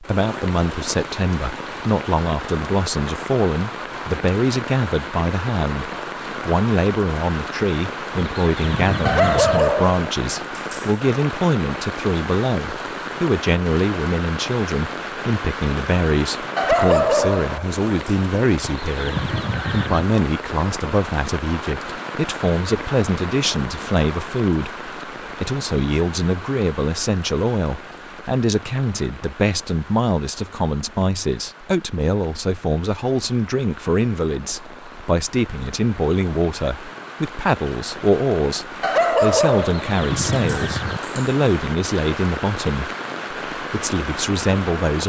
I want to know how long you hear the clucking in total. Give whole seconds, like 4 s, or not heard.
4 s.